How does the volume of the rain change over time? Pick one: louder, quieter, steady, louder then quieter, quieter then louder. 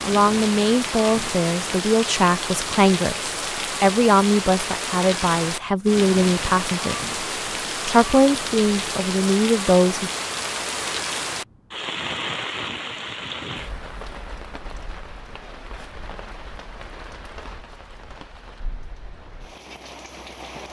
quieter.